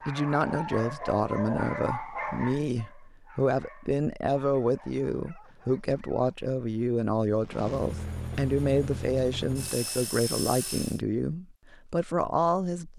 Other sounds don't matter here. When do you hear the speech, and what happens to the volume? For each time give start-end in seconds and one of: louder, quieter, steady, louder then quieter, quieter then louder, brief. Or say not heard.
0.1-12.9 steady.